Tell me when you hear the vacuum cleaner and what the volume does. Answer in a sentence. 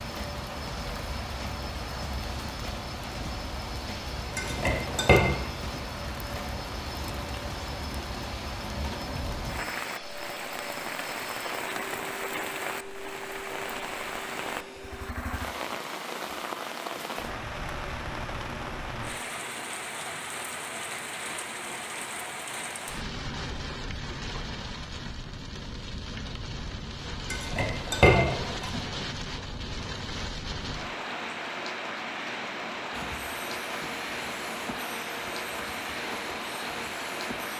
The vacuum cleaner can be heard from 0.0 to 15.2 s, at a steady volume; and from 32.9 to 37.5 s, at a steady volume.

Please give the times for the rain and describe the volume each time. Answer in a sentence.
You can hear the rain from 0.0 to 37.5 s, at a steady volume.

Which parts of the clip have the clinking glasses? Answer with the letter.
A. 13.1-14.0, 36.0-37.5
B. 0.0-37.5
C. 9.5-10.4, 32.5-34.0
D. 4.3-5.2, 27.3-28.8
D.